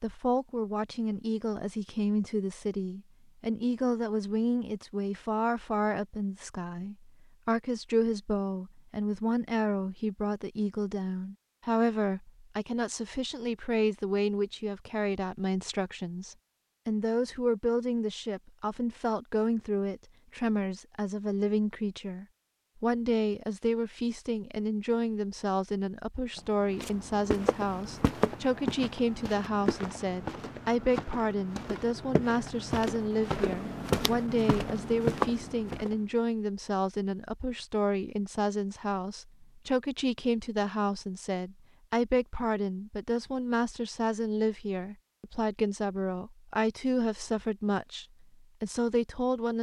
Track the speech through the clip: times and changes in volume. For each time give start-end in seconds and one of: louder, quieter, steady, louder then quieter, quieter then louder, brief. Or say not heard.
0.0-49.5 steady.